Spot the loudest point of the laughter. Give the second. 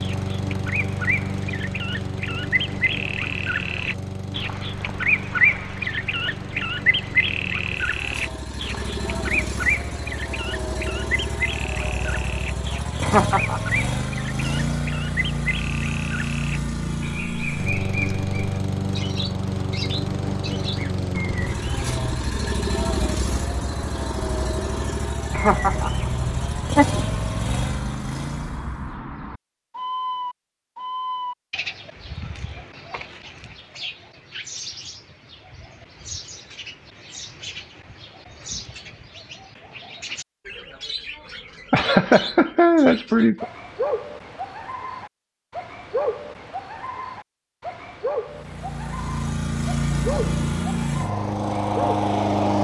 43 s.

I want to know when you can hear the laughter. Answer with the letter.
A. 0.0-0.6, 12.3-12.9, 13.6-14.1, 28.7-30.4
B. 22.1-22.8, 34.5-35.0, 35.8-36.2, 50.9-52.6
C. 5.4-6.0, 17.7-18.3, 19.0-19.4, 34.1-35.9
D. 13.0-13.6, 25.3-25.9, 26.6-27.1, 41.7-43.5
D.